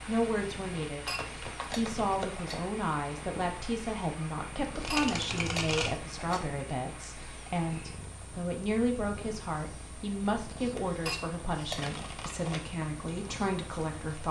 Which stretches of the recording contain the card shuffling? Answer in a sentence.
You can hear the card shuffling from 1.1 to 2.4 s, from 4.8 to 6.5 s and from 10.8 to 12.6 s.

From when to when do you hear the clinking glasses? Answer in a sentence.
You can hear the clinking glasses from 1.1 to 2.6 s, from 4.9 to 6.5 s and from 11.1 to 11.8 s.